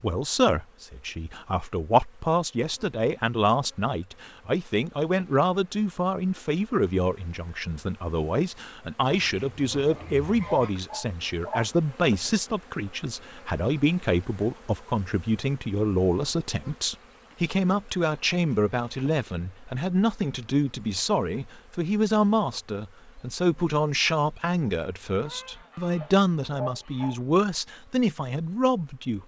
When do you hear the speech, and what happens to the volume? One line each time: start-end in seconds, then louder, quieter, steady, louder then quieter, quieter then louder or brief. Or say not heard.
0.0-29.2 steady.